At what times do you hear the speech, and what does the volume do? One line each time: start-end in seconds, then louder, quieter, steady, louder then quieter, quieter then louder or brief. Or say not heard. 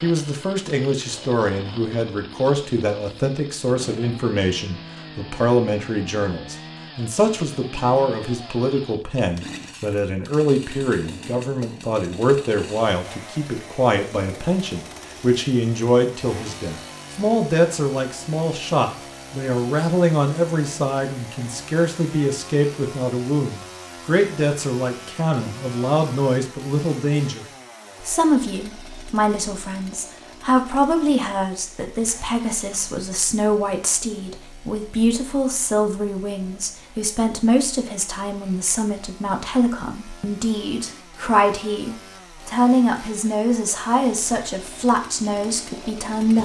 0.0-46.3 steady.